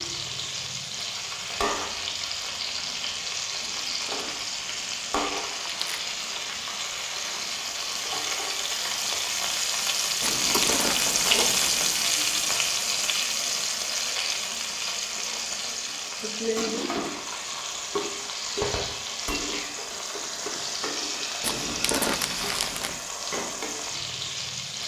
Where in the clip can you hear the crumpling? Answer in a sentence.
You can hear the crumpling from 3.6 to 6.0 s, from 10.2 to 11.9 s and from 21.4 to 23.1 s.